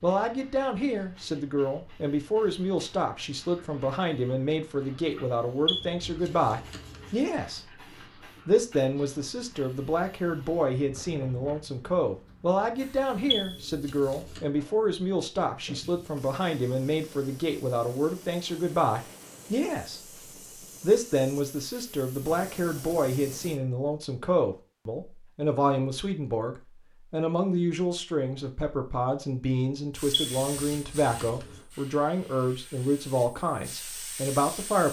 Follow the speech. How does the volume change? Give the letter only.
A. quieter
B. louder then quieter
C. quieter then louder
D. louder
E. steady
E.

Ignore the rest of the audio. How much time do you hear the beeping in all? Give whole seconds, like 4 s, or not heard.
4 s.